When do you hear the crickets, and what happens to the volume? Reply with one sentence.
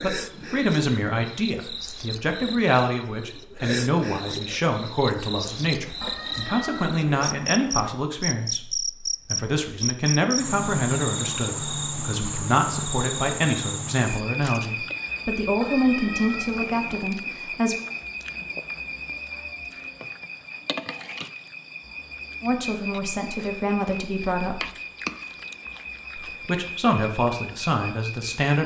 The crickets can be heard from 0.0 to 28.6 s, getting louder then quieter.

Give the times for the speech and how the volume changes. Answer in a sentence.
You can hear the speech from 0.0 to 17.8 s, at a steady volume; briefly from 22.4 to 24.7 s; and briefly from 26.1 to 28.6 s.